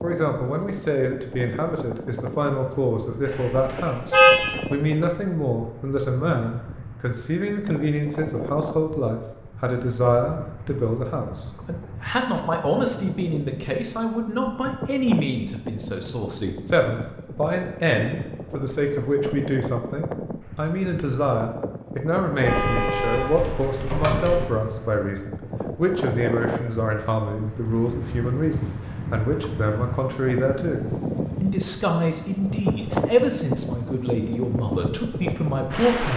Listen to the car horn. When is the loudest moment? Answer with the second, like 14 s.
4 s.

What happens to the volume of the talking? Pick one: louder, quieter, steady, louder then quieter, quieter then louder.
steady.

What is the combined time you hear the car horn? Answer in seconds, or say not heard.
3 s.